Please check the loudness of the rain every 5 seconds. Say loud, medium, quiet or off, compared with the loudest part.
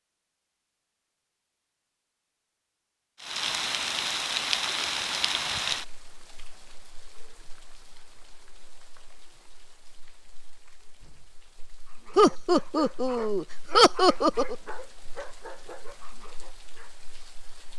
loud, medium, quiet, quiet.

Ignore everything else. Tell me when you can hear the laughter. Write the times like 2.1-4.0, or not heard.
12.2-14.6.